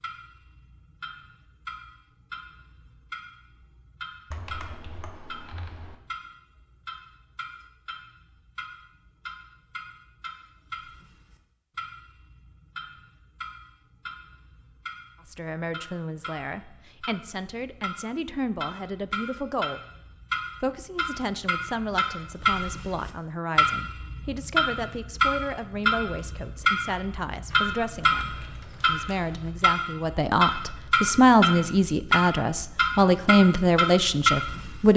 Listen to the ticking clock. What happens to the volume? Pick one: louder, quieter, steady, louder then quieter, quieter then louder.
louder.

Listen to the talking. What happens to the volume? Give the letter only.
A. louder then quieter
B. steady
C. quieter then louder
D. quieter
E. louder
E.